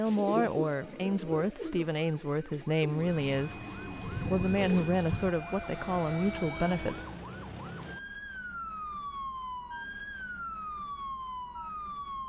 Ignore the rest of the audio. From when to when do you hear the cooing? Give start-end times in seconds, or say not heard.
0.1-5.3.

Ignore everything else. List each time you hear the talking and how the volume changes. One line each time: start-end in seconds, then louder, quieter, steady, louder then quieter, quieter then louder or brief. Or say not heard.
0.0-7.0 steady.